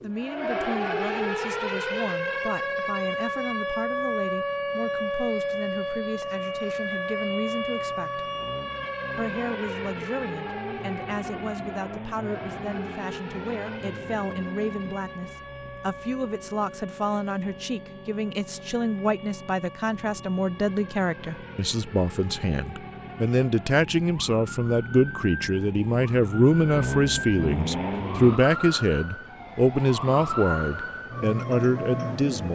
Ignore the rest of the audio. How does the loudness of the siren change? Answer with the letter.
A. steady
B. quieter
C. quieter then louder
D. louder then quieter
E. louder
C.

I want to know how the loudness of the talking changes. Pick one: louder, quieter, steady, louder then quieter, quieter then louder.
louder.